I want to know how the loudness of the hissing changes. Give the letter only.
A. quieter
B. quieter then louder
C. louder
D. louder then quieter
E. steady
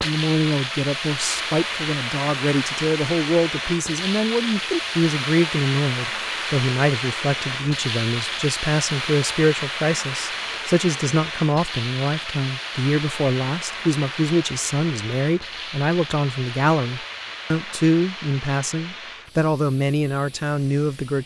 A.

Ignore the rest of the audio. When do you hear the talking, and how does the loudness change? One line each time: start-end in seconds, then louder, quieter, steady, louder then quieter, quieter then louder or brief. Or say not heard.
0.0-21.2 steady.